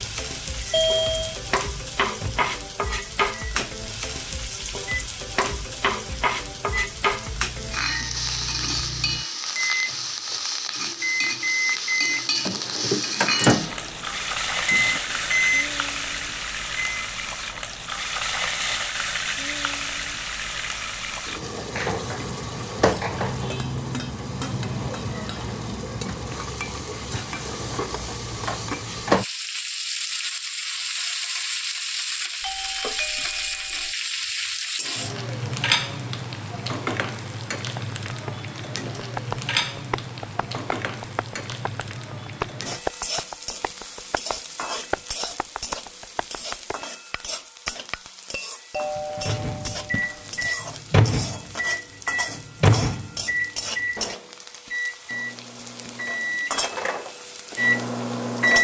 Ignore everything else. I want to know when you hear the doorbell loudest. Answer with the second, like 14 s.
1 s.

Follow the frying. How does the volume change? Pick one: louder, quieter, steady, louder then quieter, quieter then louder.
quieter.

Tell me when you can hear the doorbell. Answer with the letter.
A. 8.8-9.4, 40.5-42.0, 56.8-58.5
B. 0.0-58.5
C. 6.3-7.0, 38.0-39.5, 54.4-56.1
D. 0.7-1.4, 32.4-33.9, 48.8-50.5
D.